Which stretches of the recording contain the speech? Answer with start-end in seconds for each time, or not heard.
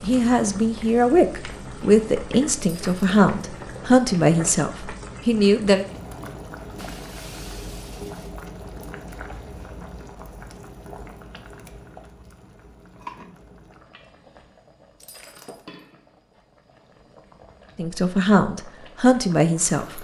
0.0-5.8, 17.8-19.9.